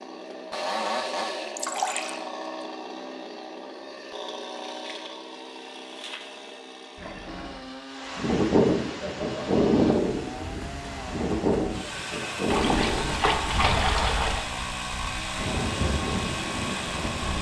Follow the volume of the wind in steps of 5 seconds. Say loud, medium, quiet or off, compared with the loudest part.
off, loud, medium, medium.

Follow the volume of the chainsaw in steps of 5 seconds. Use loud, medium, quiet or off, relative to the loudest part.
loud, medium, loud, loud.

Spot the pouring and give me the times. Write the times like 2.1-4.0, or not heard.
1.6-2.2, 7.0-7.7, 12.5-14.4.